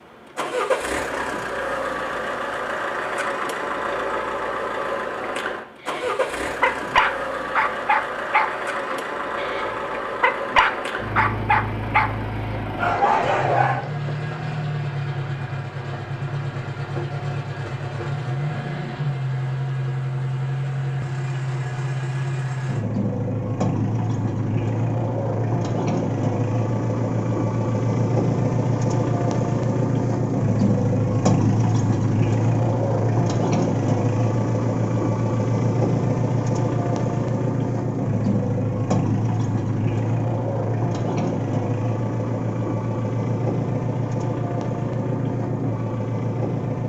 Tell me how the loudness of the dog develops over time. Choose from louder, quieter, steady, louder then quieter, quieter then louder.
steady.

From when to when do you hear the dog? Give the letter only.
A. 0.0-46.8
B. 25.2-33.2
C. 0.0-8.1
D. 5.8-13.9
D.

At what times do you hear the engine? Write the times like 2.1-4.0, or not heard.
0.0-46.8.